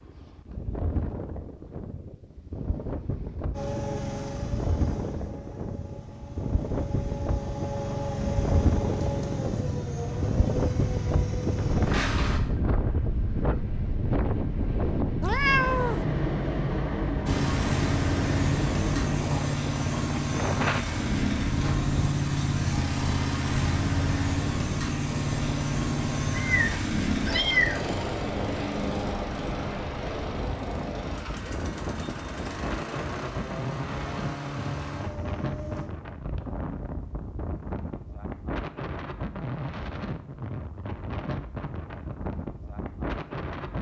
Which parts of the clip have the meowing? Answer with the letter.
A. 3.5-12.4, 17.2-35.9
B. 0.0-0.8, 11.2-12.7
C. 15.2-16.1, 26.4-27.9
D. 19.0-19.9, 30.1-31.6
C.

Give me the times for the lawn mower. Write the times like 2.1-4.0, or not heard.
3.5-12.4, 17.2-35.9.